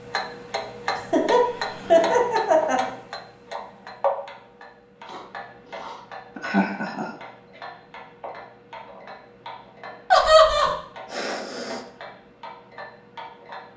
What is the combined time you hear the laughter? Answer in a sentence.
You can hear the laughter for 3 seconds altogether.